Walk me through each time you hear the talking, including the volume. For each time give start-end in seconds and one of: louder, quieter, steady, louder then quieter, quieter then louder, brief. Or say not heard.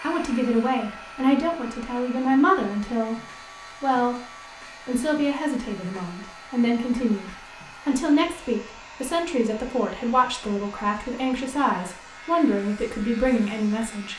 0.0-14.1 steady.